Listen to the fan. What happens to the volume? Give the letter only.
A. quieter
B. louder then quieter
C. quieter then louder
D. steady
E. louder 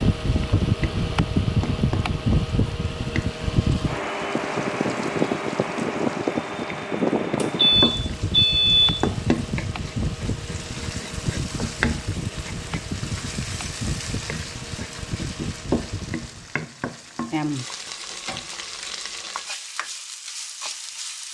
A.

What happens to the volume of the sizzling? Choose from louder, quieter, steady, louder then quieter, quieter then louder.
louder.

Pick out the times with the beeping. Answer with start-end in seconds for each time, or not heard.
7.3-9.1.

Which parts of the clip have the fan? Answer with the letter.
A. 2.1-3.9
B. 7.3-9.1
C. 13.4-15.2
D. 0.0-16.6
D.